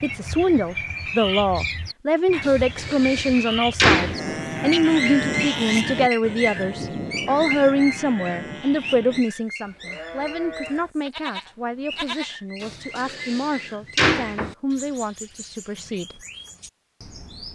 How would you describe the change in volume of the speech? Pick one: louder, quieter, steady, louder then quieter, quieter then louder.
quieter.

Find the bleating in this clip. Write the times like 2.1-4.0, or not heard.
3.9-12.3.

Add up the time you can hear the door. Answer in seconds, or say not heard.
4 s.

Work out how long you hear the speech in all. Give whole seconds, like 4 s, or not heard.
16 s.